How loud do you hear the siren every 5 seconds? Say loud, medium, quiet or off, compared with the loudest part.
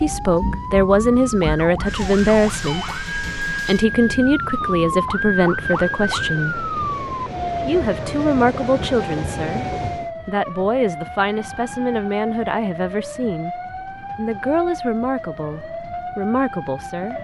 loud, loud, medium, medium.